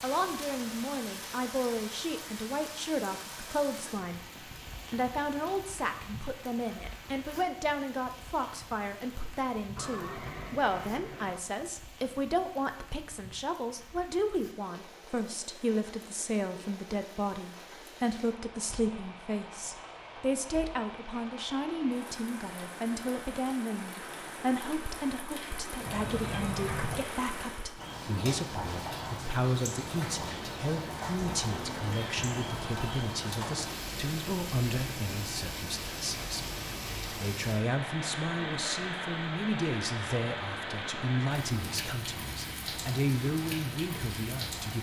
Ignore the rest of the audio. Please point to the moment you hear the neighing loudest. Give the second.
27 s.